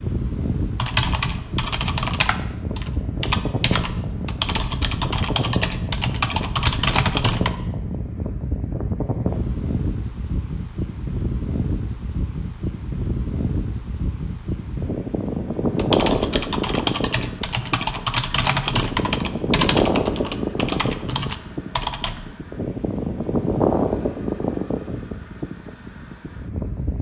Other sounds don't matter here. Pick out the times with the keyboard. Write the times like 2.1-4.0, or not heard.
0.8-7.5, 15.8-22.4.